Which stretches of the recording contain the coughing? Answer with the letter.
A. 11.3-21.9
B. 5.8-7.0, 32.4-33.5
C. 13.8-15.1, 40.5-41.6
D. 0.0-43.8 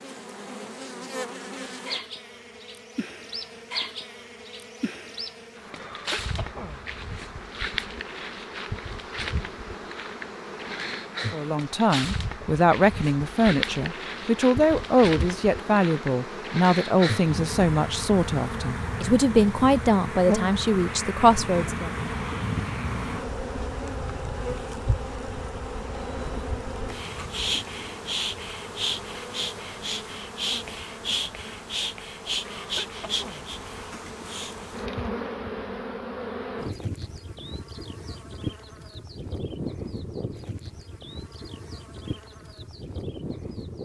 B.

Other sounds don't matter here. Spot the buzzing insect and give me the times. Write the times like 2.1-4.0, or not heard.
0.0-43.8.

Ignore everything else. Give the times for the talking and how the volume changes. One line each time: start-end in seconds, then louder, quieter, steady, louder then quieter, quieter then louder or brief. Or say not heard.
11.3-21.9 steady.